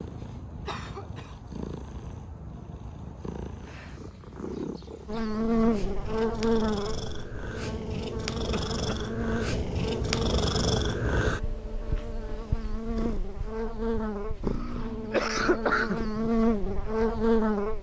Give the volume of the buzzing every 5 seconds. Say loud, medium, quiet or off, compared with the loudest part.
off, loud, medium, loud.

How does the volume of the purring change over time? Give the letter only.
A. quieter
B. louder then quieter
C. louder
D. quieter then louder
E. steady
B.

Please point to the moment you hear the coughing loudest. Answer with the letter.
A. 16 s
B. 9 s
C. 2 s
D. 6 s
A.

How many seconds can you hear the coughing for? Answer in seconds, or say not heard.
3 s.